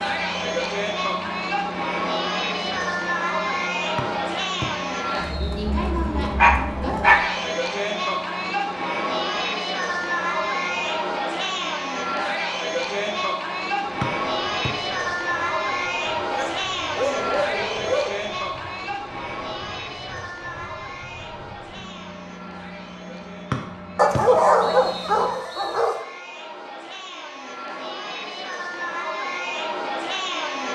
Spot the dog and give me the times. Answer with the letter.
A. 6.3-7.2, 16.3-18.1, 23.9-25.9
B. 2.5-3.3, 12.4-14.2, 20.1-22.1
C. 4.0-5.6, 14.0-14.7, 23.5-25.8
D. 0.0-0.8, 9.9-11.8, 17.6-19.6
A.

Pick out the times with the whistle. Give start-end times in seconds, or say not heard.
4.0-5.6, 14.0-14.7, 23.5-25.8.